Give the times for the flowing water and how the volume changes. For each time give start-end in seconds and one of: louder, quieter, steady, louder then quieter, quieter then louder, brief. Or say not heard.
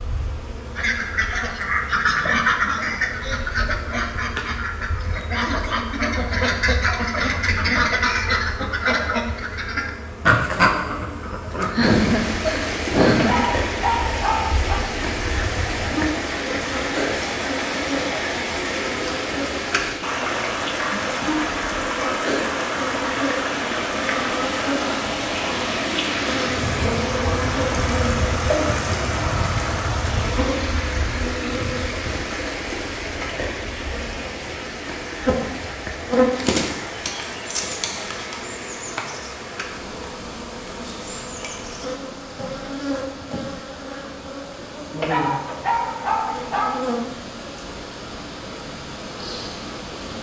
11.8-50.1 quieter.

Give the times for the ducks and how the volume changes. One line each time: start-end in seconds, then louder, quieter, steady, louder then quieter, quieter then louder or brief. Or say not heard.
0.8-11.8 quieter then louder.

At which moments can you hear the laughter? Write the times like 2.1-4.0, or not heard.
11.4-13.4.